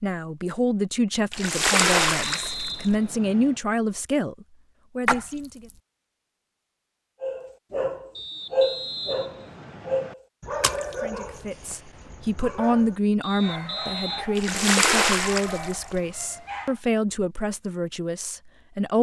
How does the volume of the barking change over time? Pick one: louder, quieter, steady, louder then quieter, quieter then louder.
quieter.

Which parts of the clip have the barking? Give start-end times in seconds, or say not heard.
7.2-16.8.